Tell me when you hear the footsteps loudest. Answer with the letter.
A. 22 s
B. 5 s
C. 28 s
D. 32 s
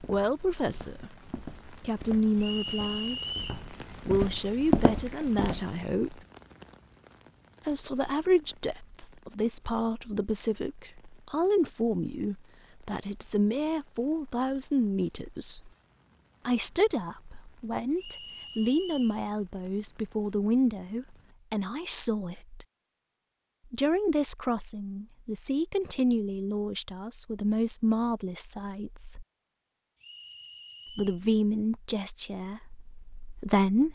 B.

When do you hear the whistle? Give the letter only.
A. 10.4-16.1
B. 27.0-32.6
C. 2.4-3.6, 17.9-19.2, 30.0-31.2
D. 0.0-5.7
C.